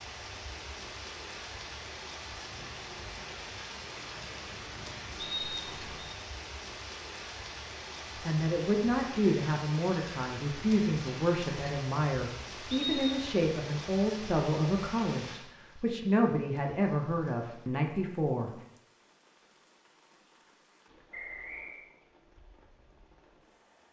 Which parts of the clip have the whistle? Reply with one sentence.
You can hear the whistle from 5.2 to 6.2 s, from 12.7 to 13.3 s and from 21.1 to 21.9 s.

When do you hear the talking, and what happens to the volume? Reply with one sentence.
The talking can be heard from 8.2 to 18.5 s, at a steady volume.